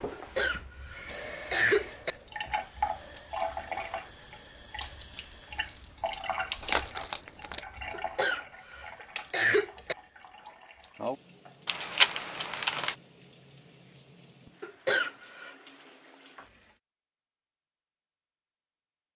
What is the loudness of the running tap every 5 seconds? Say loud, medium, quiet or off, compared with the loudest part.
loud, loud, medium, quiet.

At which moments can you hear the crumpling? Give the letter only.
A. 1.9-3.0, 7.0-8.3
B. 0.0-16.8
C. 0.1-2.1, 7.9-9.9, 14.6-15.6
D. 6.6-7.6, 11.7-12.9
D.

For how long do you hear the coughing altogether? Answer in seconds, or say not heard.
5 s.